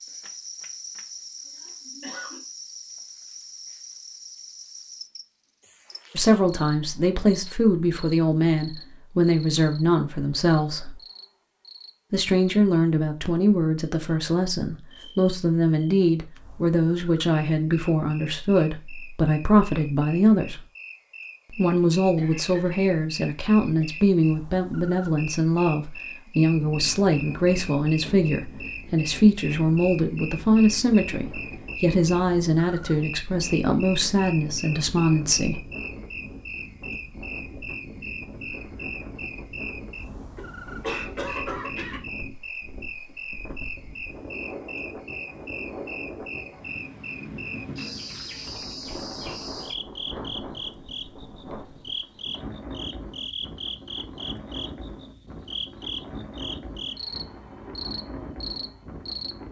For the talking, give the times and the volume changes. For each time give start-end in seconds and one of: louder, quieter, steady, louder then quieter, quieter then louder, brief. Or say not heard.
6.2-11.0 steady
12.1-20.6 steady
21.5-35.6 steady.